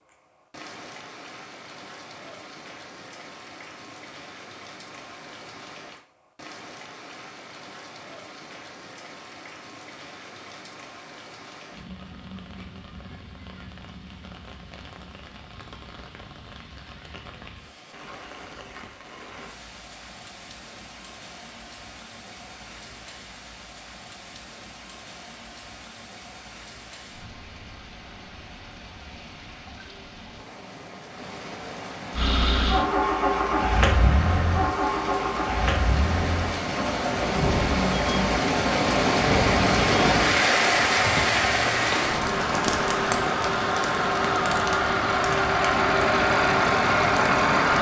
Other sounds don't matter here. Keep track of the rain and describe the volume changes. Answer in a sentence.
The loudness of the rain goes up.